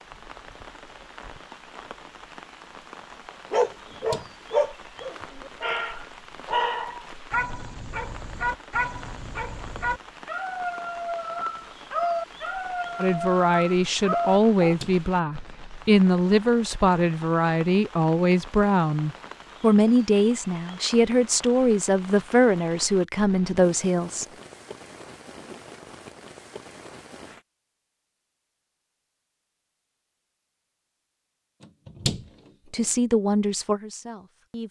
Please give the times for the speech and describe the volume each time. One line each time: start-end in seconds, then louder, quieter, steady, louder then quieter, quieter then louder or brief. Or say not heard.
12.9-24.2 steady
32.7-34.6 brief.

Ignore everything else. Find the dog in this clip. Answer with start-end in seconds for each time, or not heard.
3.5-14.8.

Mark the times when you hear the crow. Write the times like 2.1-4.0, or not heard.
not heard.